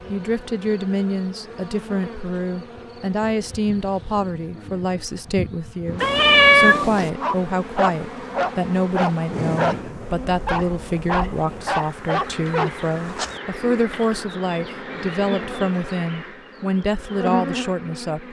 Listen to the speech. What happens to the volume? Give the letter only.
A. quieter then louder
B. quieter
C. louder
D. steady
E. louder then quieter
D.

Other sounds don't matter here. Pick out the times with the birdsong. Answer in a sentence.
You can't hear the birdsong here.